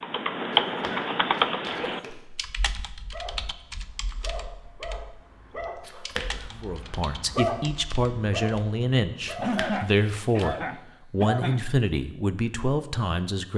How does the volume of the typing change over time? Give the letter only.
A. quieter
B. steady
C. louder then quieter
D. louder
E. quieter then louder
A.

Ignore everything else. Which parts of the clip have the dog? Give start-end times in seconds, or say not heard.
3.1-9.6.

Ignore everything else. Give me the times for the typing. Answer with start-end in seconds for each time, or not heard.
0.0-8.8.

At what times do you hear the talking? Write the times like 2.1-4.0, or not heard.
6.5-13.5.